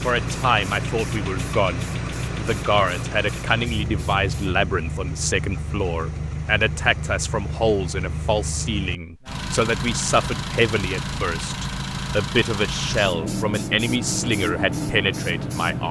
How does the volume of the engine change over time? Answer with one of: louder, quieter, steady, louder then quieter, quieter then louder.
steady.